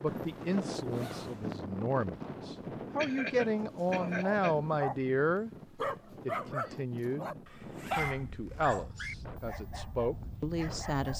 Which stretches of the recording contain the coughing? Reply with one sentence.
The coughing can be heard from 3.0 to 4.5 s.